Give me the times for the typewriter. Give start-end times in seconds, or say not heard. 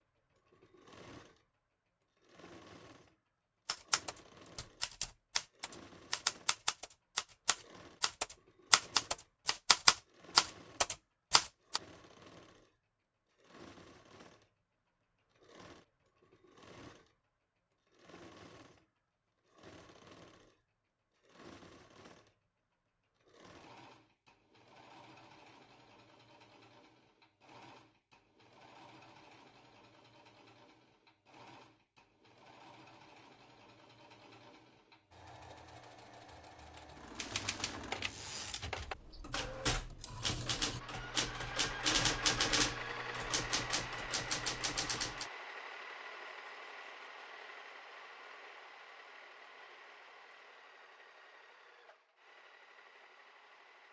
3.6-11.8, 37.1-45.3.